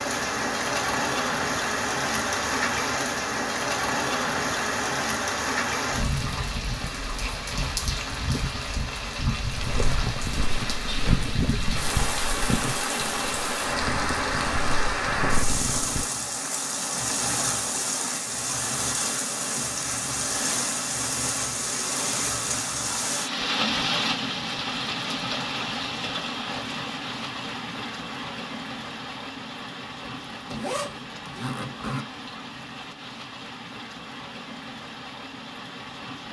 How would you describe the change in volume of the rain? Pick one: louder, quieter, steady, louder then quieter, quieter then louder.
quieter.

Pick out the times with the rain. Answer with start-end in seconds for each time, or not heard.
0.0-36.2.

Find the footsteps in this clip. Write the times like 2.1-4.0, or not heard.
9.5-16.1.